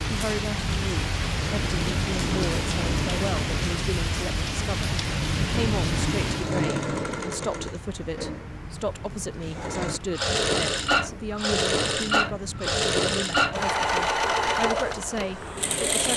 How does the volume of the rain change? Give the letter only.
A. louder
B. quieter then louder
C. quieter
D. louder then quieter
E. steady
C.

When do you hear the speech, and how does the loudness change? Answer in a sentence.
The speech can be heard from 0.1 to 16.1 s, at a steady volume.